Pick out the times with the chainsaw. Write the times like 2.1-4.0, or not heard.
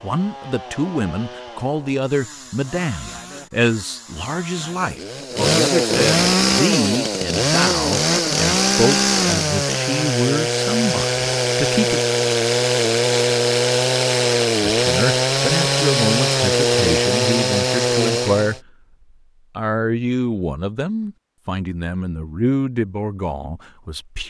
0.0-18.6.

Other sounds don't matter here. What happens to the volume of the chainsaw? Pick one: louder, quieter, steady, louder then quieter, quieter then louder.
louder.